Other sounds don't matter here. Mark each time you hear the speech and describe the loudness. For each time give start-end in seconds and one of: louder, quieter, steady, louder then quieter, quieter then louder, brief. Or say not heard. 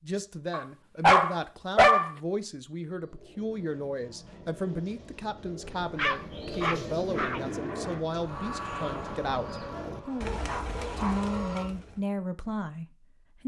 0.0-13.4 steady.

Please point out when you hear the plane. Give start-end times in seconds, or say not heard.
7.2-11.7.